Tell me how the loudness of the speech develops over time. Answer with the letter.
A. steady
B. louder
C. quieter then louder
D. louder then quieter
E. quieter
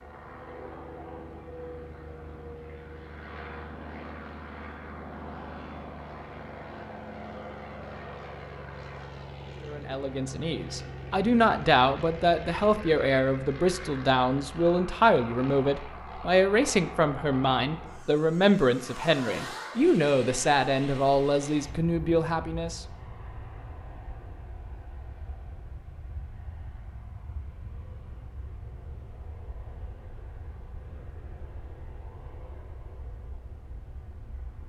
A.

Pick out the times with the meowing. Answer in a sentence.
The meowing can't be heard in this clip.